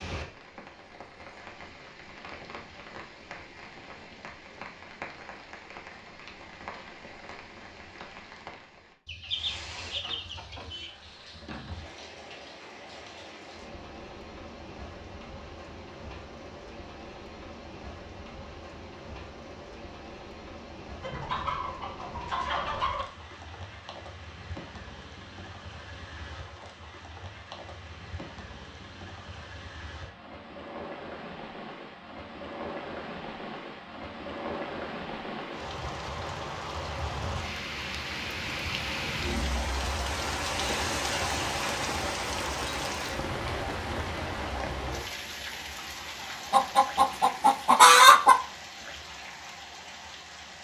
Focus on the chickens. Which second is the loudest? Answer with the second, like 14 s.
48 s.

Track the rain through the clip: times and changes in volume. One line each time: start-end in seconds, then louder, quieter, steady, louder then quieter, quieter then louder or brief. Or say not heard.
0.0-50.5 louder.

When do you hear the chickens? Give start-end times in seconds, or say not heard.
9.1-10.9, 21.0-23.1, 46.5-48.4.